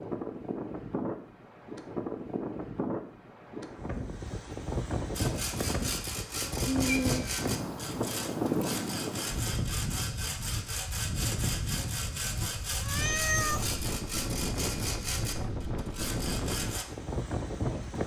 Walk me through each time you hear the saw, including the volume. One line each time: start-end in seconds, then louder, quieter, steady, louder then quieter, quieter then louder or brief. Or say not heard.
5.2-16.9 steady.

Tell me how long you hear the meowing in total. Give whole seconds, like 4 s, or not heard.
2 s.